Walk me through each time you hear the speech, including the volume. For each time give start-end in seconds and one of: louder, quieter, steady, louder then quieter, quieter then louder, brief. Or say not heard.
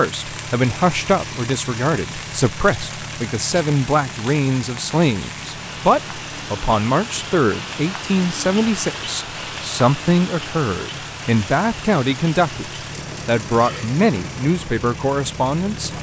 0.0-15.9 steady.